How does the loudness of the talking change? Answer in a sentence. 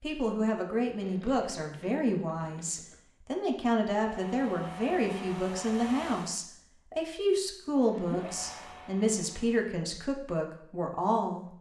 The volume of the talking stays about the same.